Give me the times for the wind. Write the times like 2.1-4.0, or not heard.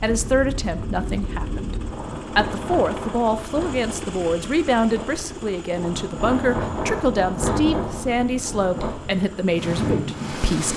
0.0-10.7.